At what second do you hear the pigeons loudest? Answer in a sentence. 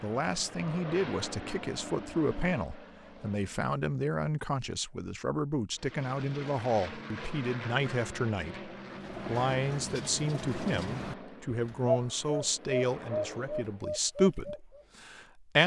The volume of the pigeons peaks at 12 seconds.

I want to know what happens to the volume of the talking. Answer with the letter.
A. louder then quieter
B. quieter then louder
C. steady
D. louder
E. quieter
C.